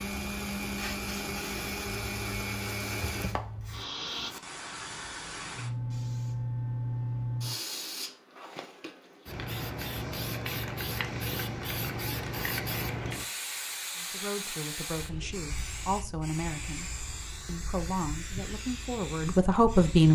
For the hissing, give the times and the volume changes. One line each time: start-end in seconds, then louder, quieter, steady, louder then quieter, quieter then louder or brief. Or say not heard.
0.0-20.0 louder then quieter.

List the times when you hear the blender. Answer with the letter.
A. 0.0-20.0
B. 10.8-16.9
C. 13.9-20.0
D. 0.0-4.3
D.